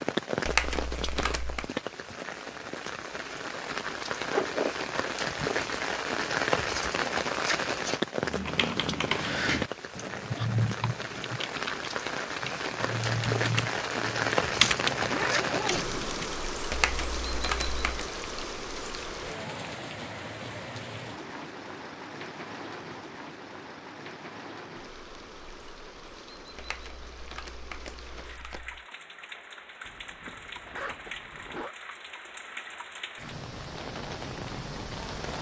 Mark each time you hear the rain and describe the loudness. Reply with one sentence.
You can hear the rain from 0.0 to 35.3 s, getting quieter.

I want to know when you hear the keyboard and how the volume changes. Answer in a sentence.
The keyboard can be heard from 8.2 to 16.4 s, getting quieter then louder.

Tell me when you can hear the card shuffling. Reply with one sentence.
You can hear the card shuffling from 0.5 to 1.7 s, from 16.7 to 18.1 s and from 26.6 to 28.9 s.